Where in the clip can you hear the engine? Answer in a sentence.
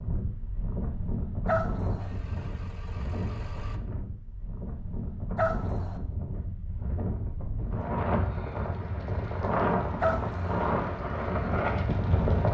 The engine can be heard from 1.9 to 3.8 s.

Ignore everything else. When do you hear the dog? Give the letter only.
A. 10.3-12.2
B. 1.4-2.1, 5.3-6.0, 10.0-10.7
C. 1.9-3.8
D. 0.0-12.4
B.